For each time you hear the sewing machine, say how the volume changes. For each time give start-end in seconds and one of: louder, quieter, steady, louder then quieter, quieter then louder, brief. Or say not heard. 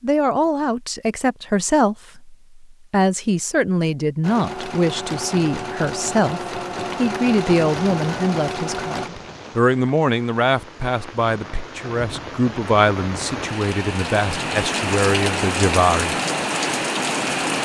4.2-9.1 steady.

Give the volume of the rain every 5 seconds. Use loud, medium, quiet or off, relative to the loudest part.
off, quiet, medium, loud.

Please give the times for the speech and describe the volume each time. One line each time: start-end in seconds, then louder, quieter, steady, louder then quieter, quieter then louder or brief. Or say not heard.
0.0-16.1 steady.